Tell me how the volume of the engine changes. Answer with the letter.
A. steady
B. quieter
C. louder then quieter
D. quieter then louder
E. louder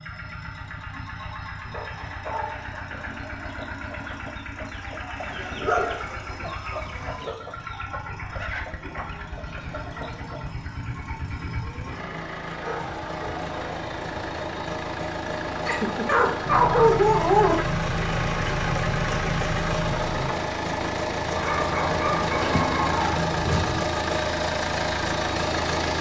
E.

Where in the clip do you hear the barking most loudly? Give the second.
17 s.